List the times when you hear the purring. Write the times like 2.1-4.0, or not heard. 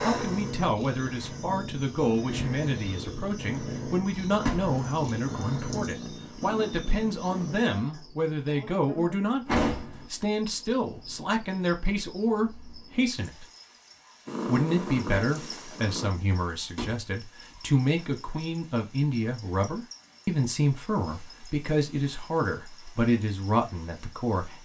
0.0-7.7, 14.2-16.1.